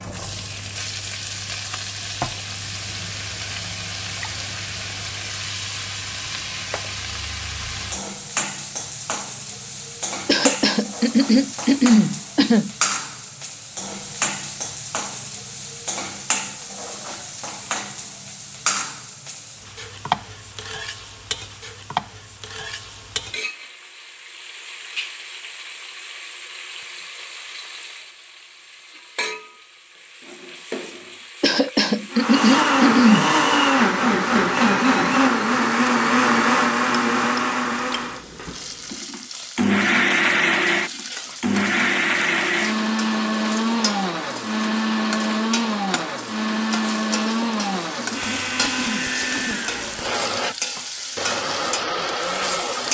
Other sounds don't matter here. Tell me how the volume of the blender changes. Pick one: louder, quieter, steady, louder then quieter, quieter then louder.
quieter.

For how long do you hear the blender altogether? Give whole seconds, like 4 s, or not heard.
21 s.